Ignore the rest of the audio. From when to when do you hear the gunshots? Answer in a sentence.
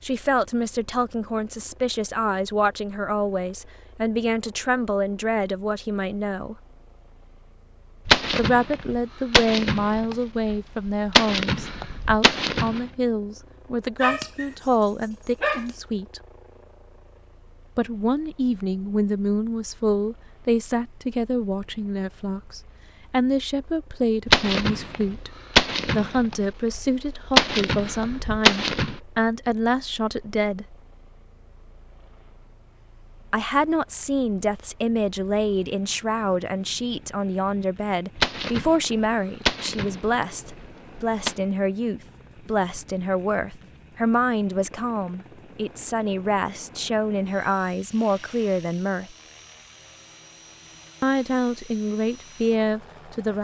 You can hear the gunshots from 8.1 to 12.8 s, from 24.2 to 28.9 s and from 38.1 to 41.4 s.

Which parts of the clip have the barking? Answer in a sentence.
The barking can be heard from 13.9 to 15.8 s.